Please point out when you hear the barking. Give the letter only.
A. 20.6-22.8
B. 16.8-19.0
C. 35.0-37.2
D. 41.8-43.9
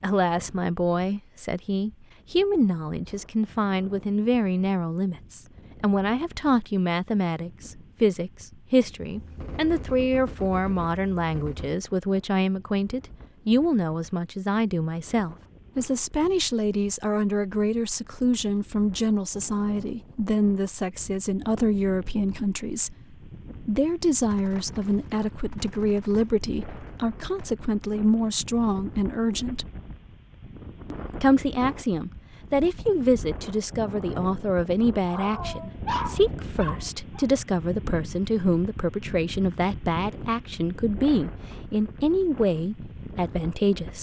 C.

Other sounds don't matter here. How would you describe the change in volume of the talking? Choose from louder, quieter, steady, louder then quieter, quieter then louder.
steady.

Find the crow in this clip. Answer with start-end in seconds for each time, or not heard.
not heard.